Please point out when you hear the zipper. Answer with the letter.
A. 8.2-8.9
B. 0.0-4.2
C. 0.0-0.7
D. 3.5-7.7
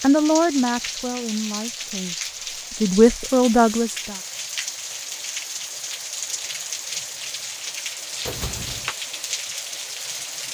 A.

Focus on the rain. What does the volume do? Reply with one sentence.
The volume of the rain stays about the same.